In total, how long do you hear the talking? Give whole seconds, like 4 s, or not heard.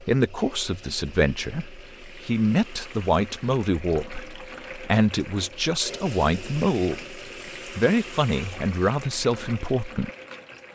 10 s.